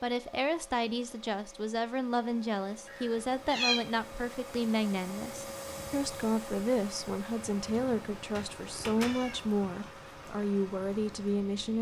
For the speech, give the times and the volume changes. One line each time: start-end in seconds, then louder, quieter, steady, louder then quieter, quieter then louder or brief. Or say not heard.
0.0-11.7 steady.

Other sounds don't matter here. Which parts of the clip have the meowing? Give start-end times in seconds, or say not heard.
2.9-3.8, 8.3-9.6.